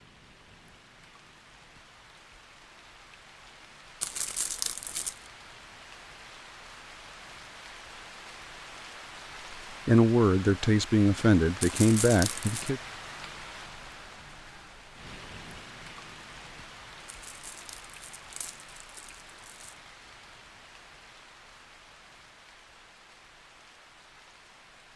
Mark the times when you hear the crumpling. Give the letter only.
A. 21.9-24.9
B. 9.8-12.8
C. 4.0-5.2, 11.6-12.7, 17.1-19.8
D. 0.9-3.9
C.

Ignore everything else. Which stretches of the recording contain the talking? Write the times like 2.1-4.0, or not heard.
9.8-12.8.